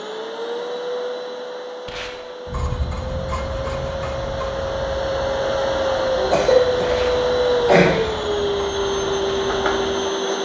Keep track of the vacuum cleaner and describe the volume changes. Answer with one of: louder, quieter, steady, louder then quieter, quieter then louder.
louder.